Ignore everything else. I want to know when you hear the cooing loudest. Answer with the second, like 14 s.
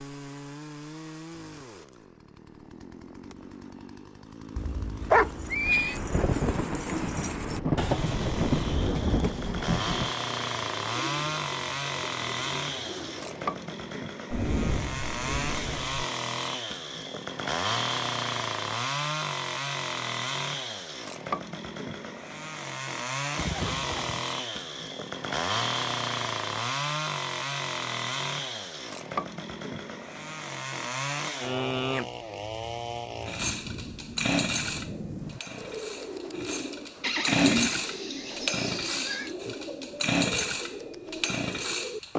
8 s.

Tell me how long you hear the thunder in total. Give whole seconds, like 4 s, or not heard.
8 s.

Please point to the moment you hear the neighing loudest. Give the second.
5 s.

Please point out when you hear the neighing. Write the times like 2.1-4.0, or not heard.
4.5-6.0, 23.4-24.2, 37.0-39.3.